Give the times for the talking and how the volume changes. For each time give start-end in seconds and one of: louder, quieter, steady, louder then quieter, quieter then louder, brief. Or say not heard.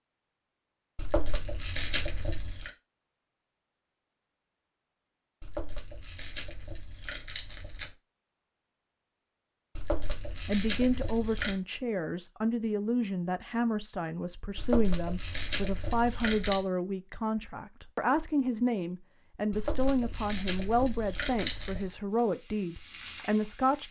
10.4-23.8 steady.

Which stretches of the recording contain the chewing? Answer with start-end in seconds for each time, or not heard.
0.9-2.7, 5.4-7.9, 9.8-11.6, 14.6-16.6, 19.5-21.9.